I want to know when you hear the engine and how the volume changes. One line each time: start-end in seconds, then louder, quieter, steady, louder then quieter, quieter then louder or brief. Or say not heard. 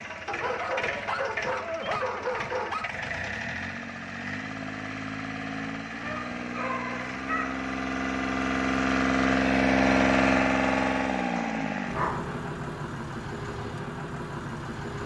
0.0-15.0 louder then quieter.